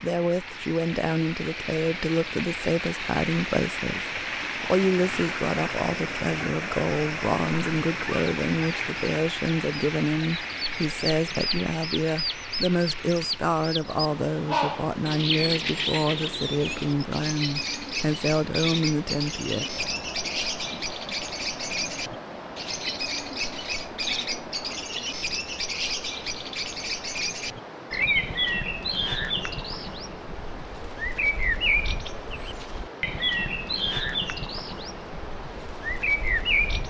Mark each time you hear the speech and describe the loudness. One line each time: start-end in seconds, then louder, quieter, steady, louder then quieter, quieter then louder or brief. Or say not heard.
0.0-19.6 steady.